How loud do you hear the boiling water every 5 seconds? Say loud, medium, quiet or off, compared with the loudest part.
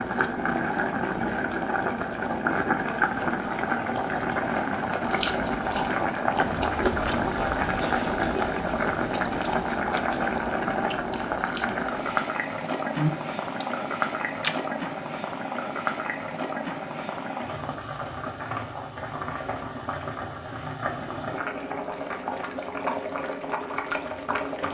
loud, loud, loud, medium, medium.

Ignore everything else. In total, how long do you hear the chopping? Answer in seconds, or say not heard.
not heard.